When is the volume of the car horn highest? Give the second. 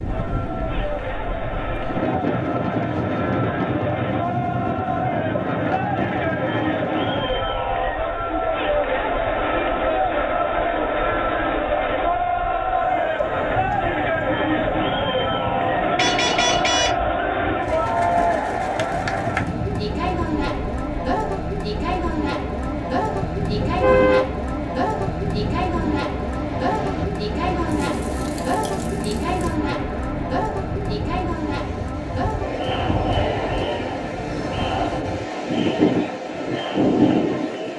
24 s.